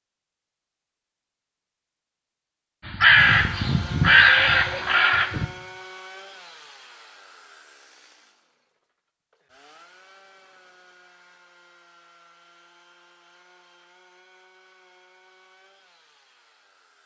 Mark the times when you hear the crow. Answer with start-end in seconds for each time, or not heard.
2.9-5.5.